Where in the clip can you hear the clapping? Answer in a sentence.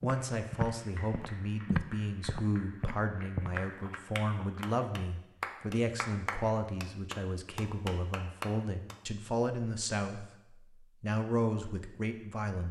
The clapping can be heard from 0.3 to 8.9 s.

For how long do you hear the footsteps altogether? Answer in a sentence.
You can hear the footsteps for 5 seconds altogether.